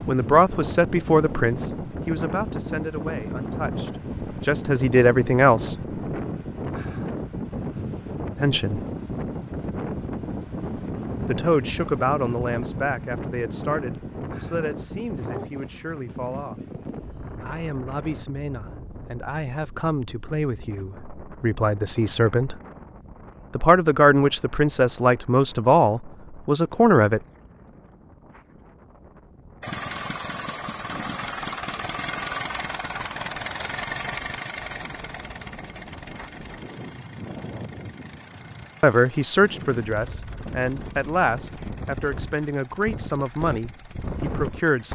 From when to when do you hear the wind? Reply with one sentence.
You can hear the wind from 0.0 to 44.9 s.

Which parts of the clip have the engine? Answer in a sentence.
You can hear the engine from 29.6 to 44.9 s.